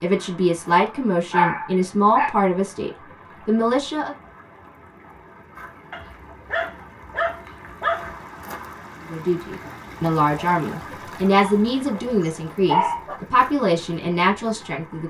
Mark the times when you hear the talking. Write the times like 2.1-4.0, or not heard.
0.0-4.2, 9.1-15.0.